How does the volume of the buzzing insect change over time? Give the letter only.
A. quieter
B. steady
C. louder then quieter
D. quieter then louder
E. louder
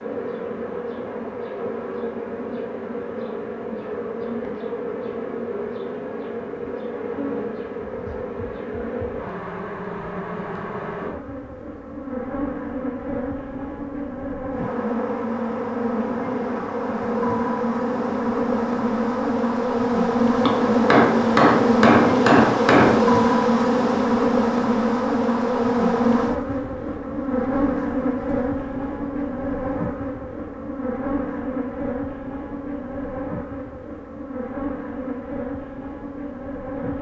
C.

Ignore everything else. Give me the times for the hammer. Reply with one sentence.
The hammer can be heard from 20.4 to 23.1 s.